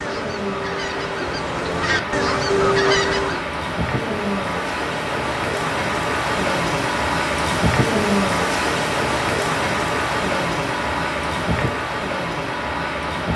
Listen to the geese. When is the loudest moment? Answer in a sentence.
The volume of the geese peaks at 3 seconds.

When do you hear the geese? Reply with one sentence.
You can hear the geese from 0.0 to 3.5 s.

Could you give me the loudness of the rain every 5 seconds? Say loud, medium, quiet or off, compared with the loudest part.
medium, loud, loud.